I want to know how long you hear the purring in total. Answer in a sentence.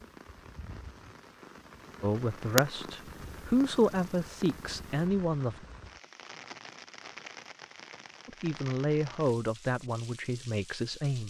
The purring can be heard for 5 seconds in total.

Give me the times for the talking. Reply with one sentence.
You can hear the talking from 2.0 to 5.6 s and from 8.2 to 11.2 s.